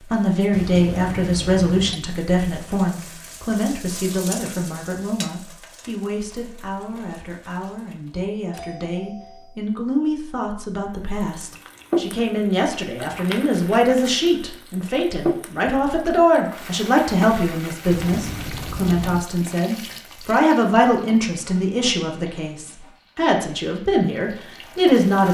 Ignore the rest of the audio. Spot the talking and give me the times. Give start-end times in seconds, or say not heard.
0.0-25.2.